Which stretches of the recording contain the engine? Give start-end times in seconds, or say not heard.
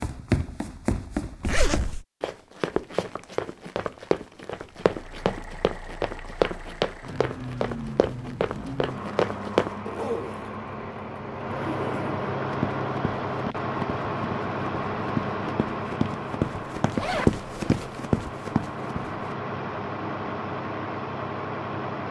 4.8-22.0.